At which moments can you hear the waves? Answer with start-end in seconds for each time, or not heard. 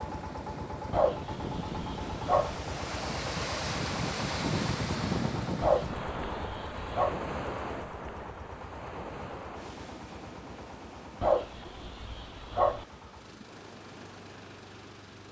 0.0-15.2.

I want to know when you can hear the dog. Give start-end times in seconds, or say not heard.
0.9-2.5, 5.6-7.2, 11.2-12.8.